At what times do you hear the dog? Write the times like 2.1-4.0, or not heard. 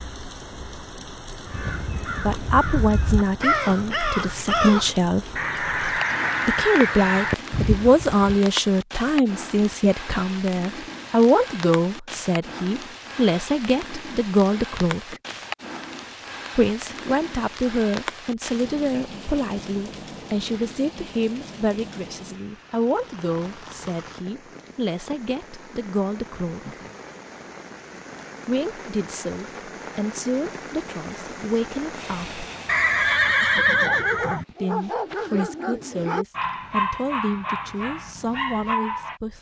33.8-39.2.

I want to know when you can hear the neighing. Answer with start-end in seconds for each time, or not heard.
32.6-34.5.